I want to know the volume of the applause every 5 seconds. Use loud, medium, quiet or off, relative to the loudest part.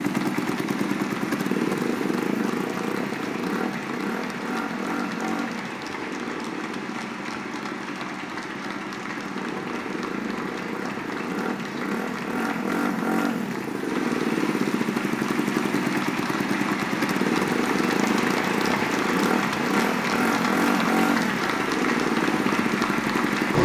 medium, medium, medium, loud, loud.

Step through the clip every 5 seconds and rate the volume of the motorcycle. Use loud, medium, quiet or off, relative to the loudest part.
loud, medium, loud, loud, loud.